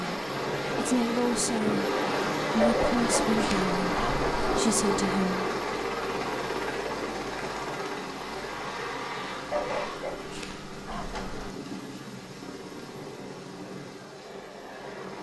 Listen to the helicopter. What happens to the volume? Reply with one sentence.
The volume of the helicopter goes down.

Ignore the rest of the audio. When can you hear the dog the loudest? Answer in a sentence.
The loudest moment of the dog is at 3 seconds.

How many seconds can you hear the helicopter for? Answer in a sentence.
You can hear the helicopter for 15 seconds altogether.